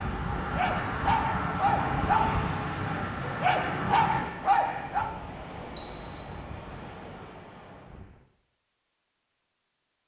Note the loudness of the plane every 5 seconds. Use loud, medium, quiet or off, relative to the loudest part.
loud, off.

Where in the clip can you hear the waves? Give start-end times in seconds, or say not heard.
0.0-8.2.